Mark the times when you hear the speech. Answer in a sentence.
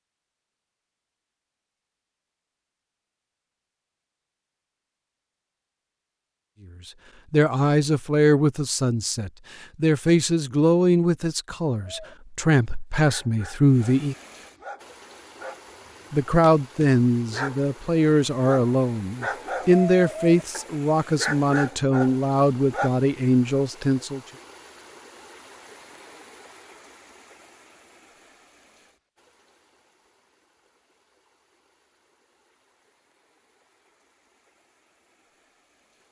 You can hear the speech from 6.8 to 14.2 s and from 16.1 to 24.2 s.